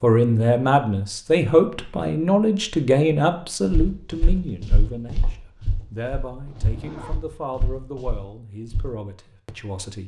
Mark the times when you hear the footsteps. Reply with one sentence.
You can hear the footsteps from 3.6 to 8.9 s.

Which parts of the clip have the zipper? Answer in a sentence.
The zipper can be heard from 6.5 to 7.2 s.